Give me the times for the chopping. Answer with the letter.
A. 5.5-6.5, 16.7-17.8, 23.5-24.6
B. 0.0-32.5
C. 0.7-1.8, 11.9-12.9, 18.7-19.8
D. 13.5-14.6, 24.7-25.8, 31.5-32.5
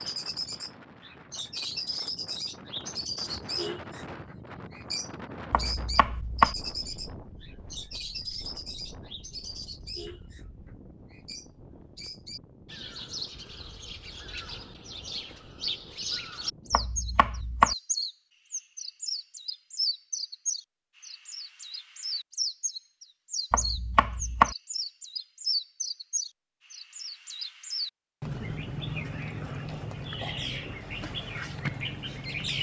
A.